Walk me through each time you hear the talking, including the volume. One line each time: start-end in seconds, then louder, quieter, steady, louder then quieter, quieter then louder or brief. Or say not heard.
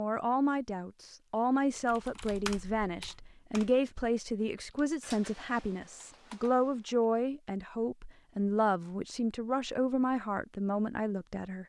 0.0-11.6 steady.